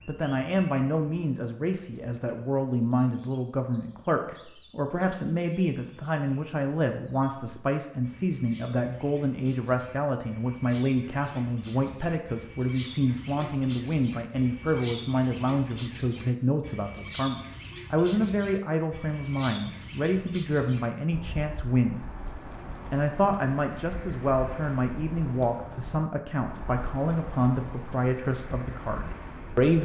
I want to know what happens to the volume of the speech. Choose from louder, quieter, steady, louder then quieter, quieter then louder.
steady.